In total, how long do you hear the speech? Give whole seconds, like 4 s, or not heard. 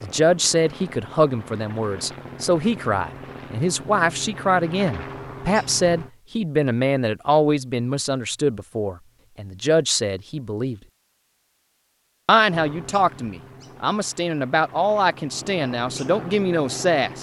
16 s.